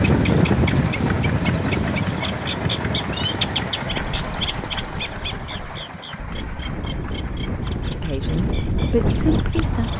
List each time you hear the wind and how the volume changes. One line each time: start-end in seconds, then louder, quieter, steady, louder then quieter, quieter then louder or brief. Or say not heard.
0.0-9.9 quieter then louder.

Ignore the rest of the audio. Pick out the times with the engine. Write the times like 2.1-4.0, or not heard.
0.0-9.9.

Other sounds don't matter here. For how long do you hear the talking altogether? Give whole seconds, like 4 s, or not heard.
2 s.